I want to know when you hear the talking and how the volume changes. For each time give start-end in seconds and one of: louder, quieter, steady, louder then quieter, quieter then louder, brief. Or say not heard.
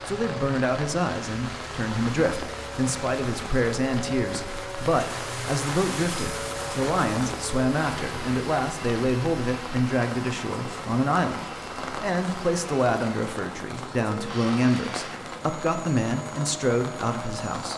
0.1-17.7 steady.